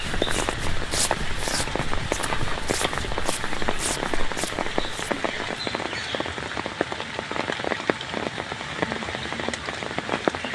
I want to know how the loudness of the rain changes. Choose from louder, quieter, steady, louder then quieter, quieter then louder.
steady.